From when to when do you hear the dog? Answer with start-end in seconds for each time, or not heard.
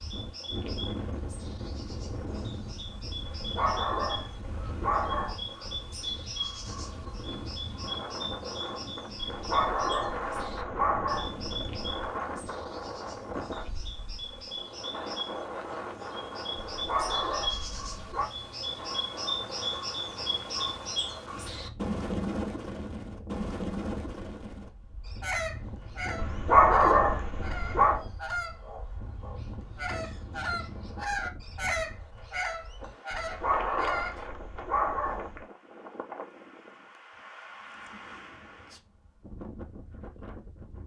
3.2-5.5, 9.2-11.9, 16.6-18.3, 26.1-28.0, 33.1-35.5.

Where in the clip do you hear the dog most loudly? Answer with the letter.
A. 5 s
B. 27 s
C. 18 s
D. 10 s
B.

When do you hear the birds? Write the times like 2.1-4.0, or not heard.
0.0-34.2.